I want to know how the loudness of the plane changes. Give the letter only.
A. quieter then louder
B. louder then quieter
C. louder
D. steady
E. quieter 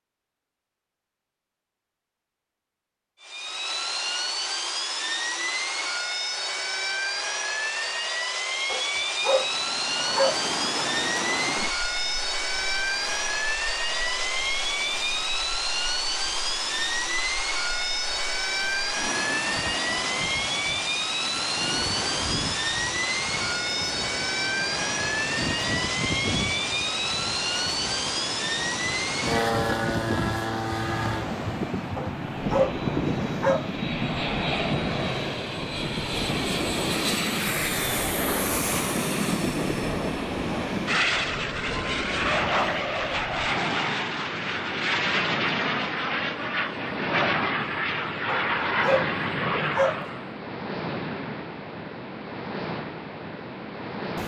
D.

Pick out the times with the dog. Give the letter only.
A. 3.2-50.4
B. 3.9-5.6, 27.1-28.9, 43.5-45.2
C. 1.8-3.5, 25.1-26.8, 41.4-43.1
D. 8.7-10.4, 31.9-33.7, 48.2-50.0
D.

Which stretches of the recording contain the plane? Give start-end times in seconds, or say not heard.
3.2-50.4.